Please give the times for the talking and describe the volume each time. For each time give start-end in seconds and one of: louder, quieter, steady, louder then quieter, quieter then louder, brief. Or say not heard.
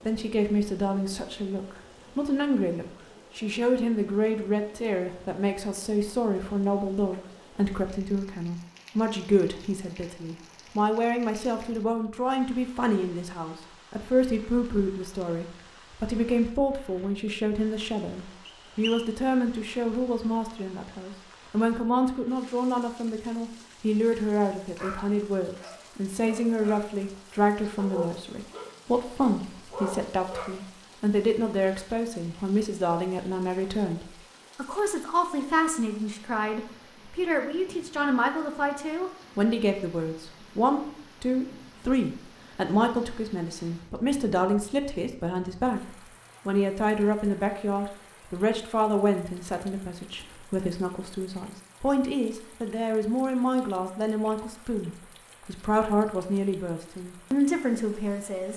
0.1-58.5 steady.